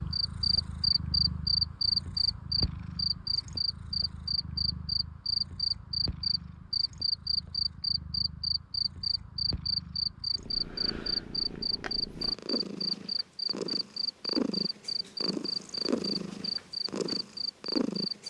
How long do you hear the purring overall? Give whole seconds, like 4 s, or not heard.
18 s.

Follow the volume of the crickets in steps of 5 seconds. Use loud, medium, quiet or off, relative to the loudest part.
loud, loud, loud, medium.